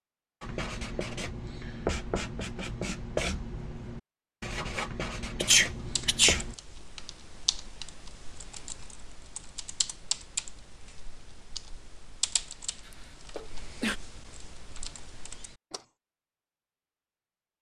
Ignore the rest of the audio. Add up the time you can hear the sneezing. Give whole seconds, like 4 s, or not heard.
2 s.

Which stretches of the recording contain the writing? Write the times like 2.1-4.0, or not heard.
0.4-6.5.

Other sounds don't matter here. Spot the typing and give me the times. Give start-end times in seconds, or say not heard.
5.7-15.8.